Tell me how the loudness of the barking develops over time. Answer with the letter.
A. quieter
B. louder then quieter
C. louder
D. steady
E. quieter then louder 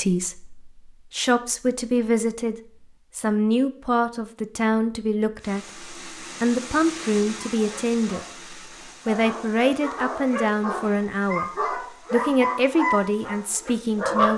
C.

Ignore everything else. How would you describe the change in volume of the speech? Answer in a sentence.
The volume of the speech stays about the same.